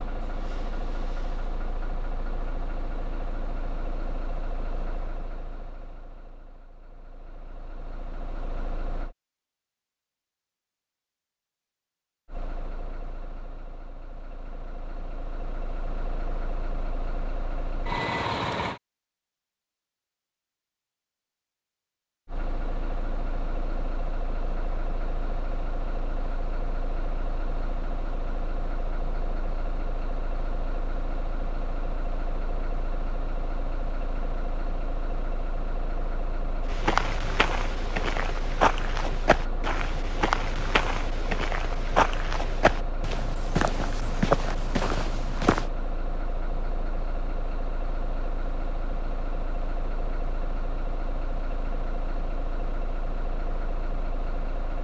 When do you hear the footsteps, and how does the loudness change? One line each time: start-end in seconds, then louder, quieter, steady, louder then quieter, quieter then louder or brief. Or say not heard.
36.6-45.7 steady.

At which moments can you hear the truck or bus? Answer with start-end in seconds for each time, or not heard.
0.0-9.2, 12.2-18.8, 22.2-54.8.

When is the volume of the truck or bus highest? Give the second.
18 s.